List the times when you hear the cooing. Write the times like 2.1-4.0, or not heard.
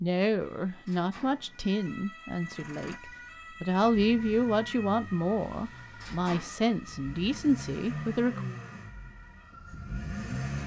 not heard.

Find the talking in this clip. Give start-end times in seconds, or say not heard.
0.0-8.4.